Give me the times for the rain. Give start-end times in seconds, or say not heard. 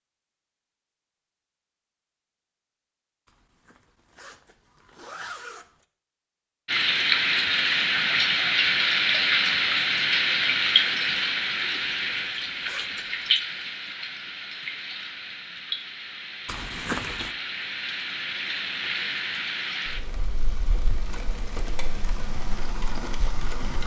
6.7-23.8.